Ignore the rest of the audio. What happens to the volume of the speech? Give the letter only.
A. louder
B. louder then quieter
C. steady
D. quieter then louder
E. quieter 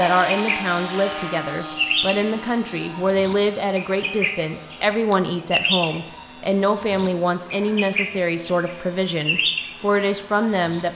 C.